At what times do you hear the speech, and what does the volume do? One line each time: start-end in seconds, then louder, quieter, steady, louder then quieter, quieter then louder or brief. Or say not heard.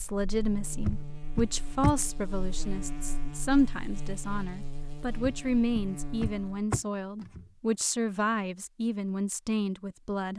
0.0-10.3 steady.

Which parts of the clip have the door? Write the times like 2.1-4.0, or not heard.
0.8-2.0, 5.2-7.5.